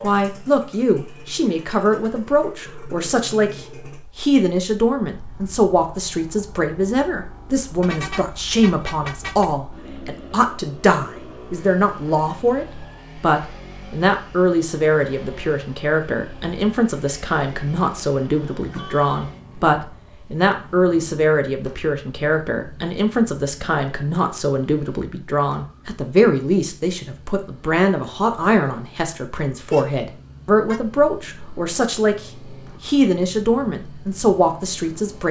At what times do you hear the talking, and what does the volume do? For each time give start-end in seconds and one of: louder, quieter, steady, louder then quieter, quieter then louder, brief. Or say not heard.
0.0-35.2 steady.